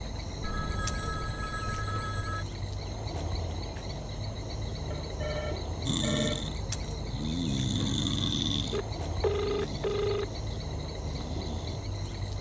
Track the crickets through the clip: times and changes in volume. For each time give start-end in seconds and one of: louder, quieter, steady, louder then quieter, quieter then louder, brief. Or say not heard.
0.0-12.3 steady.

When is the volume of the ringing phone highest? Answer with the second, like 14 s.
9 s.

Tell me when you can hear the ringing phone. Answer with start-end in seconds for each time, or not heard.
0.4-2.5, 4.9-6.5, 8.7-10.2.